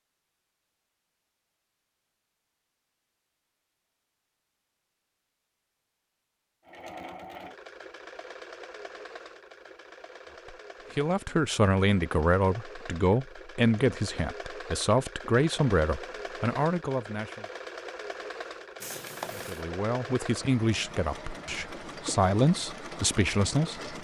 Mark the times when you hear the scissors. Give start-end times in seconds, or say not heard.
18.8-19.6.